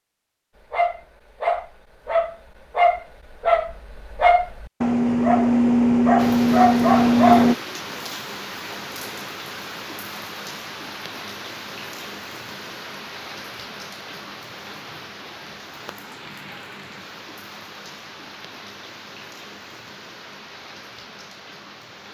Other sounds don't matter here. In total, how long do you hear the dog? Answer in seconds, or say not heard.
7 s.